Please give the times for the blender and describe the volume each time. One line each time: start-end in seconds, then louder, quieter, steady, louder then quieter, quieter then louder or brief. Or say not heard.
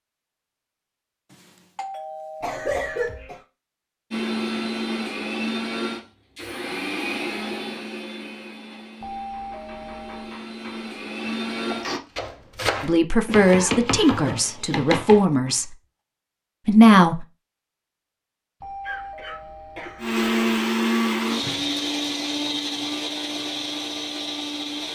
4.1-12.0 quieter then louder
19.9-24.8 quieter.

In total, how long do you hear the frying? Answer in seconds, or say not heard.
not heard.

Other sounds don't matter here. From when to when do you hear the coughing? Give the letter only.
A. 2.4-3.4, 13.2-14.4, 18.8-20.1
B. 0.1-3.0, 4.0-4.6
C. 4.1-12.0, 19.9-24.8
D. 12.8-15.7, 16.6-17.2
A.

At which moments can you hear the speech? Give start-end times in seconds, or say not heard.
12.8-15.7, 16.6-17.2.